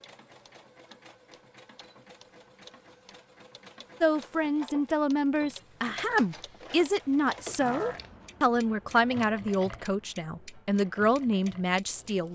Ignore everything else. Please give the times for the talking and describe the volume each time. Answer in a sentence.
The talking can be heard from 4.0 to 12.2 s, at a steady volume.